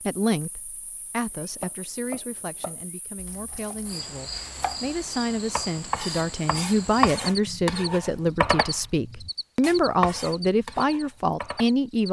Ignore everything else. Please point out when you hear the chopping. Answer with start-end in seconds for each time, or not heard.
1.6-11.7.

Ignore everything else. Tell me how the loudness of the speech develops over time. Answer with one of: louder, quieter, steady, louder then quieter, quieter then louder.
louder.